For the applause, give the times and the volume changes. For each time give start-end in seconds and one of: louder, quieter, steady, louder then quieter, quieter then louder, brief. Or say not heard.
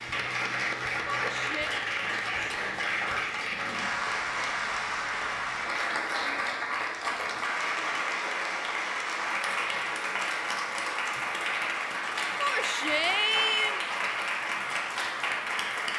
0.0-15.9 steady.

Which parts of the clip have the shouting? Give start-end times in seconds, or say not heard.
1.1-1.8, 12.3-13.8.